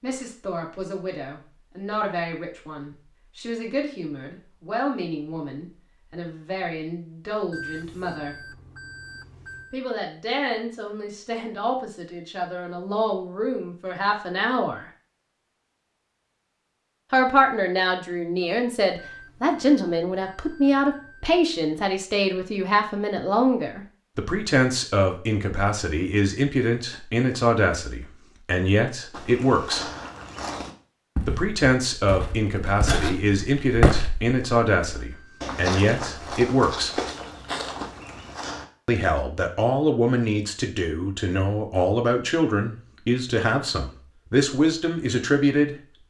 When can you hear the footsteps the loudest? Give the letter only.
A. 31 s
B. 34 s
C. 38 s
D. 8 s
B.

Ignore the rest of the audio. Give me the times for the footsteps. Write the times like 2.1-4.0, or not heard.
29.1-38.6.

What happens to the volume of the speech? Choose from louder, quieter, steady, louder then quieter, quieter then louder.
louder.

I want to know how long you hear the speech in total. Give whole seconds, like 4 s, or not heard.
39 s.